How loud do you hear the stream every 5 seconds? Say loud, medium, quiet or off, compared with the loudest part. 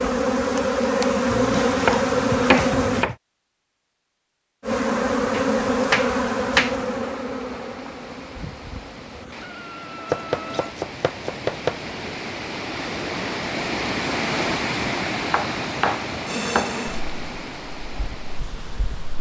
off, quiet, loud, loud.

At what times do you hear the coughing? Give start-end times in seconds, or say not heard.
not heard.